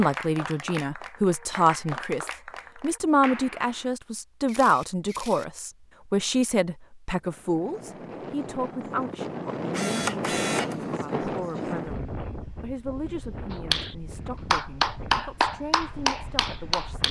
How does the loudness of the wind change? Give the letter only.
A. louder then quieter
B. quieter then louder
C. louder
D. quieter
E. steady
A.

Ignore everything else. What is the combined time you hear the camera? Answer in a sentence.
The camera can be heard for 2 seconds in total.